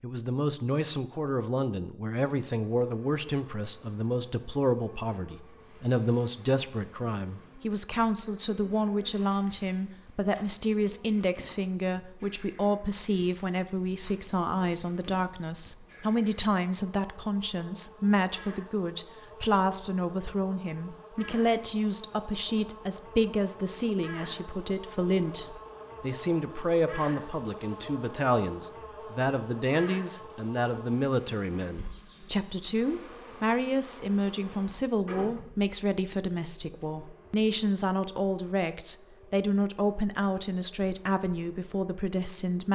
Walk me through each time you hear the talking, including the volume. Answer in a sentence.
You can hear the talking from 0.0 to 42.7 s, at a steady volume.